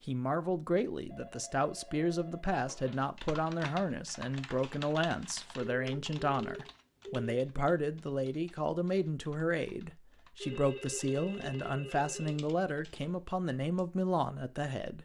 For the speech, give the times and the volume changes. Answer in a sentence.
You can hear the speech from 0.1 to 15.0 s, at a steady volume.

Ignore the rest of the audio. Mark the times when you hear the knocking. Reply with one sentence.
You can't hear the knocking here.